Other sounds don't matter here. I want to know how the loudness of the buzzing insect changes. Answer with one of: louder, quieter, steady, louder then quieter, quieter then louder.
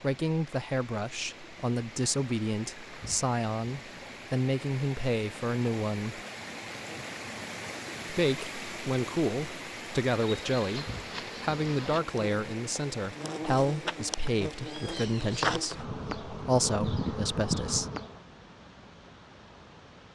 louder.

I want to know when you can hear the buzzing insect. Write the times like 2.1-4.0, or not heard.
10.2-18.2.